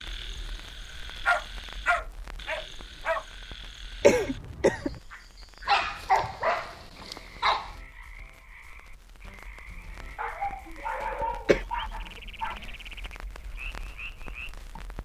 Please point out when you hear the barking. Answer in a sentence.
The barking can be heard from 1.2 to 3.2 s, from 5.7 to 7.7 s and from 10.2 to 12.6 s.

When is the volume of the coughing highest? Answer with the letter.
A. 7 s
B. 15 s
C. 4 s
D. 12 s
C.